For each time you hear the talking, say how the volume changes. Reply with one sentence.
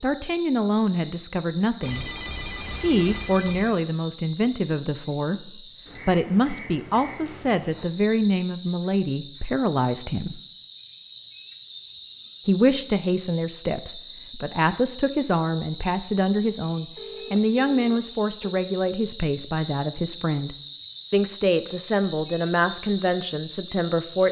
The talking can be heard from 0.0 to 10.4 s, at a steady volume; and from 12.4 to 24.2 s, at a steady volume.